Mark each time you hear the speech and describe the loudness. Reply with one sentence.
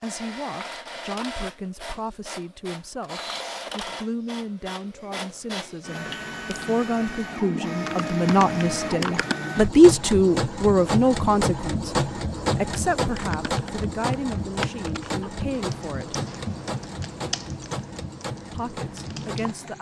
The speech can be heard from 0.0 to 16.2 s, getting louder then quieter; and briefly from 18.5 to 19.7 s.